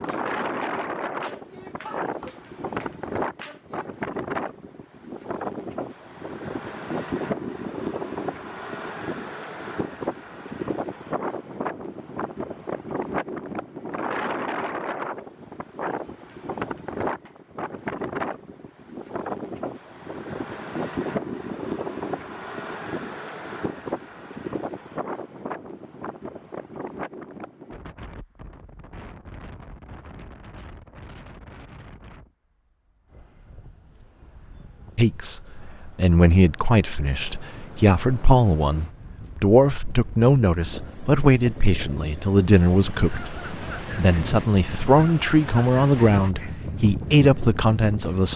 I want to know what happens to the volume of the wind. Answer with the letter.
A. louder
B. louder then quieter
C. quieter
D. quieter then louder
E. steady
D.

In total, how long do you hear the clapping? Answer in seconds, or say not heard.
4 s.